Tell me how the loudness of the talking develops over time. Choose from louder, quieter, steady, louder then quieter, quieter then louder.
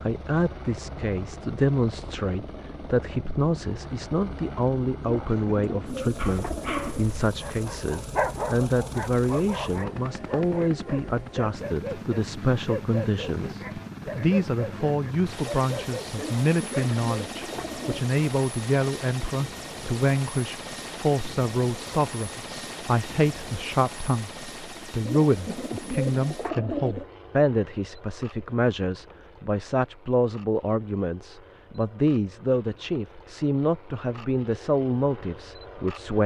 steady.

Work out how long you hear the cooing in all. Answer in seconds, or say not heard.
6 s.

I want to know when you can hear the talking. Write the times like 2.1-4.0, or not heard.
0.0-36.2.